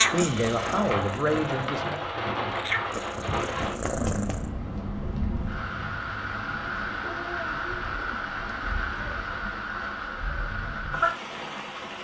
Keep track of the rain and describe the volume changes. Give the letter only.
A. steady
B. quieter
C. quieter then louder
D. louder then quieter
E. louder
A.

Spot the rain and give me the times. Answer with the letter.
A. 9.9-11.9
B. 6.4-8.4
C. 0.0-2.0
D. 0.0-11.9
D.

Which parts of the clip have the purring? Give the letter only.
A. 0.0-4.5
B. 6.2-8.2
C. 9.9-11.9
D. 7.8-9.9
A.